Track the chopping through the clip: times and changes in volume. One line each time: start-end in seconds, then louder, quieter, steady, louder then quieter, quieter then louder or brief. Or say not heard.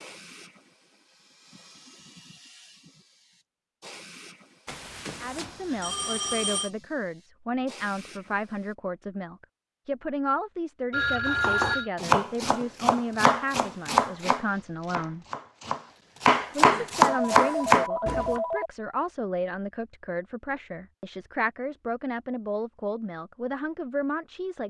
11.2-18.4 quieter then louder.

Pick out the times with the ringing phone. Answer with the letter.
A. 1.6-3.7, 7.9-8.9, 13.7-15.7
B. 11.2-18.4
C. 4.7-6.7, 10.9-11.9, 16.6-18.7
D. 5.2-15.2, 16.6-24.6
C.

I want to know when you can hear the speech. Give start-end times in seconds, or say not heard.
5.2-15.2, 16.6-24.6.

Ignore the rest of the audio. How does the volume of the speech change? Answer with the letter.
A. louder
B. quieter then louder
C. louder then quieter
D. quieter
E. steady
E.